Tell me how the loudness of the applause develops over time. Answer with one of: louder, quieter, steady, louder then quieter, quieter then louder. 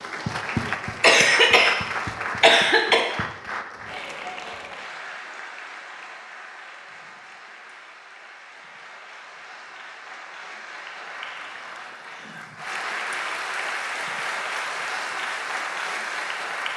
quieter then louder.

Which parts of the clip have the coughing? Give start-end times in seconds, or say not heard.
1.0-1.8, 2.4-3.0.